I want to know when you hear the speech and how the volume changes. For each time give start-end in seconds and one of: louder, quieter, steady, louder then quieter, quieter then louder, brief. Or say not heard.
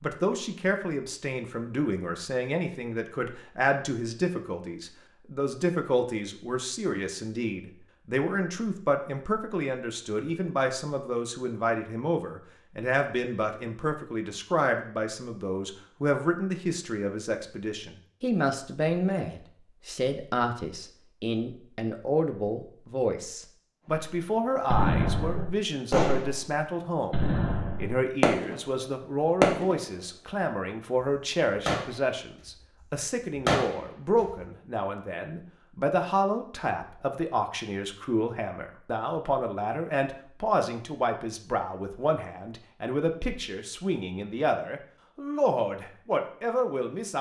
0.0-47.1 steady.